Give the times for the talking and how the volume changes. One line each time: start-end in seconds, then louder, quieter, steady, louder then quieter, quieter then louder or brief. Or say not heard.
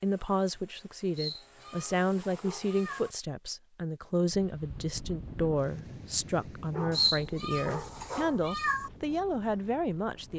0.0-10.3 steady.